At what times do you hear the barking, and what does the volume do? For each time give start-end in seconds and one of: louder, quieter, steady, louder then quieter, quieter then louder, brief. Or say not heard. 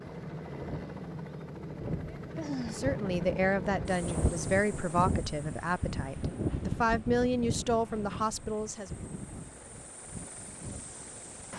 not heard.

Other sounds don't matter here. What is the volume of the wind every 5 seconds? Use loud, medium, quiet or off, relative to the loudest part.
loud, loud, medium.